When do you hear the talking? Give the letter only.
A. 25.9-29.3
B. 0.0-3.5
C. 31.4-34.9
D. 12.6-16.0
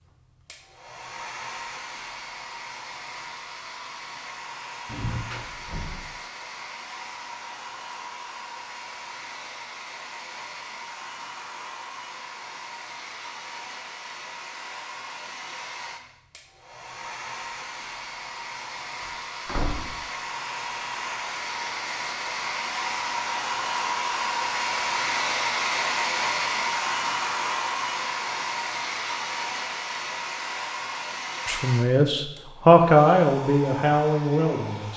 C.